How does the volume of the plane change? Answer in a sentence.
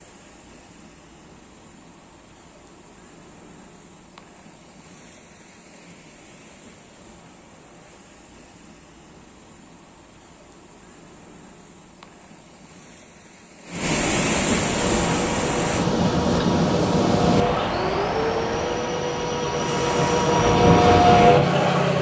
The volume of the plane goes up.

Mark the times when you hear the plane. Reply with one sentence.
The plane can be heard from 15.0 to 21.9 s.